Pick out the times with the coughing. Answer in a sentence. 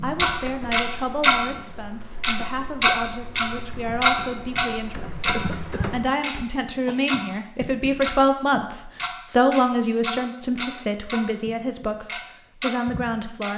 You can hear the coughing from 5.3 to 7.0 s.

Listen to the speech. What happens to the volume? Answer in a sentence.
The loudness of the speech goes up, then down.